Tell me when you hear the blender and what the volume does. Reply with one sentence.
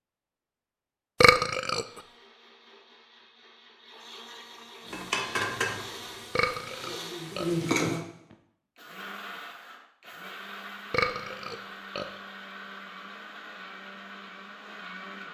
You can hear the blender from 1.8 to 15.3 s, getting louder.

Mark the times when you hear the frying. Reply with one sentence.
You can hear the frying from 4.8 to 8.1 s.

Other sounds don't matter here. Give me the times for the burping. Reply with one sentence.
The burping can be heard from 1.2 to 1.9 s, from 6.3 to 7.5 s and from 10.9 to 12.1 s.